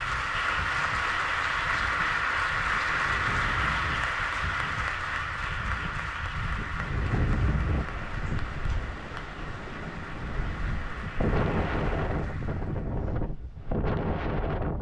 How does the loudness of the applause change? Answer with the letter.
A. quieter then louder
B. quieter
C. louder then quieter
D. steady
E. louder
B.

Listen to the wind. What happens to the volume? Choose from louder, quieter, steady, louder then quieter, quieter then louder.
louder.